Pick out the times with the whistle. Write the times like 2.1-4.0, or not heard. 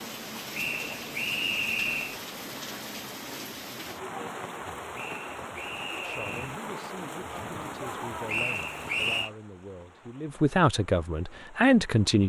0.5-2.2, 5.0-6.5, 8.2-9.3.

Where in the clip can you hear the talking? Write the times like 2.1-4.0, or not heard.
6.0-12.2.